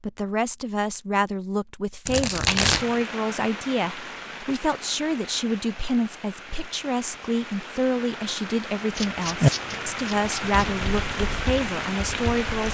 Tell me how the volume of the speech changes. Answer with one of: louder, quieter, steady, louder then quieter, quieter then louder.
steady.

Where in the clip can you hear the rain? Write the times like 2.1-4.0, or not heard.
2.7-12.7.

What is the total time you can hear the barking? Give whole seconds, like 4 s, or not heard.
not heard.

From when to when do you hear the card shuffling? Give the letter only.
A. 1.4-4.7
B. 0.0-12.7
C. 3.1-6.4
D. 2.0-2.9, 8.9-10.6
D.